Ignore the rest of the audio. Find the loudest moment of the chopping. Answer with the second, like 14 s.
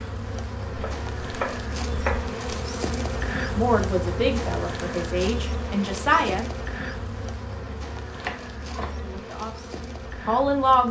2 s.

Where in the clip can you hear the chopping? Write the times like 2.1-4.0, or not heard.
0.7-2.4, 8.1-8.9.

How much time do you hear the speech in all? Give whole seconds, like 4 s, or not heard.
5 s.